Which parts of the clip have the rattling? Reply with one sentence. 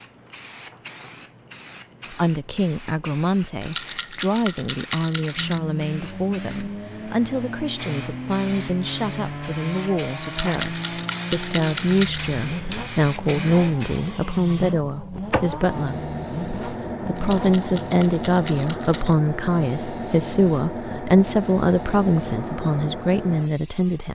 The rattling can be heard from 3.6 to 5.6 s, from 10.2 to 12.2 s and from 17.1 to 19.1 s.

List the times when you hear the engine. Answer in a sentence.
You can hear the engine from 5.3 to 17.8 s.